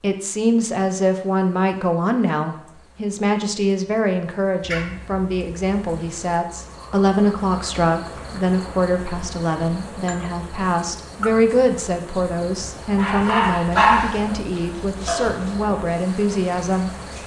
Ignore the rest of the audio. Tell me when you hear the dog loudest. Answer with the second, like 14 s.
14 s.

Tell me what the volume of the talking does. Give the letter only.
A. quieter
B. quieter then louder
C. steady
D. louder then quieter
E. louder
C.